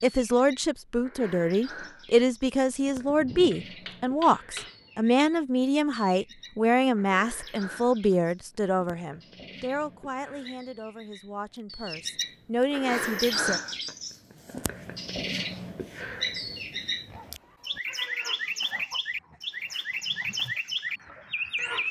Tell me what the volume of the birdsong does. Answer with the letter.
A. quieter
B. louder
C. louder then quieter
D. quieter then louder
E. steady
B.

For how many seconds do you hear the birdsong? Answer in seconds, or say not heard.
22 s.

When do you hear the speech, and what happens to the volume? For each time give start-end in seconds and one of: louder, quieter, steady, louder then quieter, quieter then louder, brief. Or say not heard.
0.0-13.6 quieter.